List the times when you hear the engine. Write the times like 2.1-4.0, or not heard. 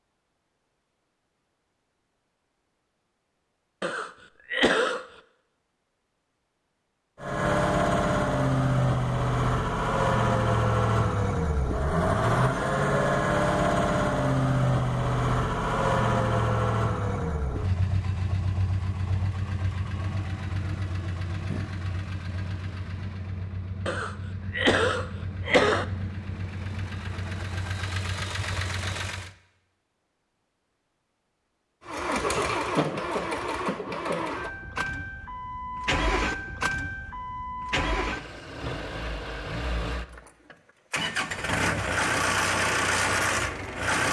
7.2-29.3, 31.9-44.0.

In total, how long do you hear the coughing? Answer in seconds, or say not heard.
3 s.